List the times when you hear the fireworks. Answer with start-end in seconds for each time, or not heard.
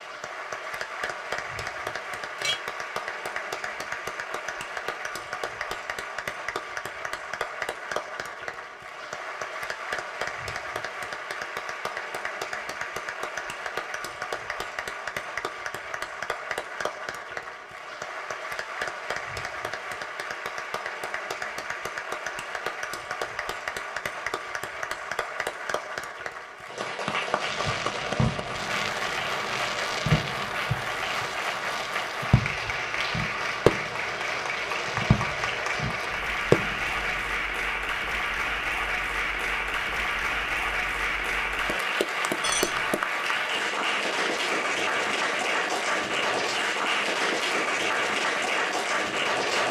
27.2-37.3.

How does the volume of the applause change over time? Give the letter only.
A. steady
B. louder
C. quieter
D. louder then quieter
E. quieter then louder
B.